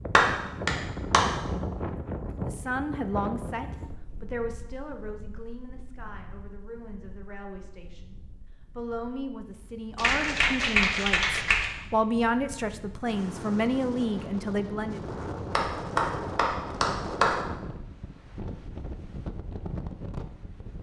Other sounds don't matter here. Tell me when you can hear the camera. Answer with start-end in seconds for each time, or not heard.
not heard.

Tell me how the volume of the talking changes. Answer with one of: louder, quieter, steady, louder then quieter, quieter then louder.
quieter then louder.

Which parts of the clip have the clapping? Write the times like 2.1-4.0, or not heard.
0.1-1.2, 9.9-11.7, 15.5-17.4.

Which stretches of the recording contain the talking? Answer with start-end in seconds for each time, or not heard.
2.5-15.0.